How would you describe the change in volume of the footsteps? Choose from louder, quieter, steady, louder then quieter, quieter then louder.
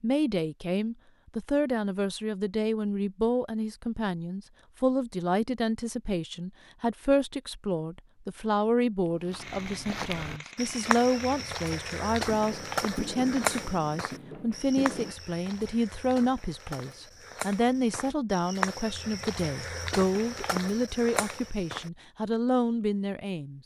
quieter then louder.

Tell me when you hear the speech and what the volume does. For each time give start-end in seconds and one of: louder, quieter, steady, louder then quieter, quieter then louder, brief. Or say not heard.
0.0-23.6 steady.